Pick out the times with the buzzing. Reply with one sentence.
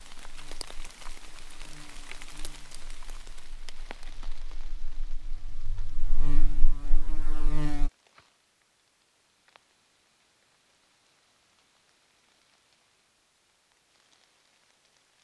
The buzzing can be heard from 0.1 to 7.9 s.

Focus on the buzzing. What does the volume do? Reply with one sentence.
The volume of the buzzing goes down, then up.